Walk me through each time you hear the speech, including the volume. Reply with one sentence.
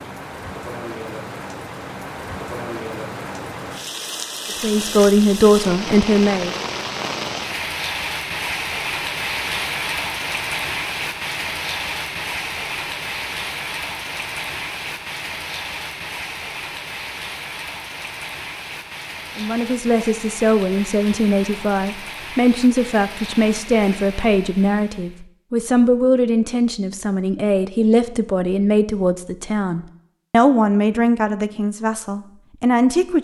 You can hear the speech briefly from 4.6 to 6.5 s; and from 19.4 to 33.1 s, at a steady volume.